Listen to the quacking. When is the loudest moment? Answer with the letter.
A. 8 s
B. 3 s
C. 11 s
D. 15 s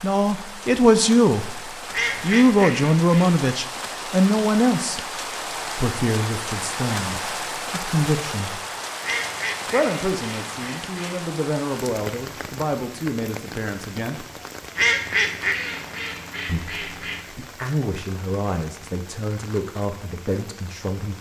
D.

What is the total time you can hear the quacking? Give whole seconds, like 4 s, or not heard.
6 s.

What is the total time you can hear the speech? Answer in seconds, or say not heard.
18 s.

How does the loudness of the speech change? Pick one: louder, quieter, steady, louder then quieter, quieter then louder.
quieter.